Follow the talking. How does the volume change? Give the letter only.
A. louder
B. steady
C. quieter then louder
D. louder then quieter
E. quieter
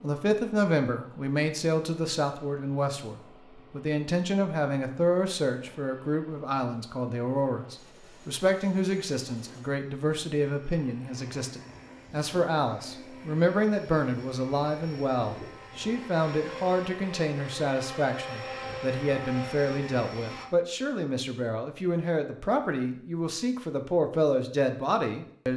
B.